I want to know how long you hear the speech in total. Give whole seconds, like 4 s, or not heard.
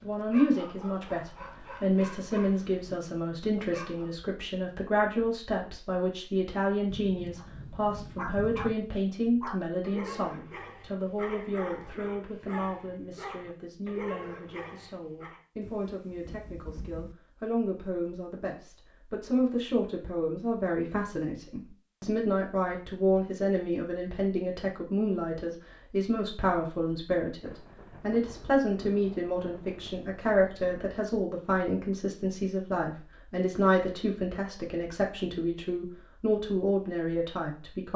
38 s.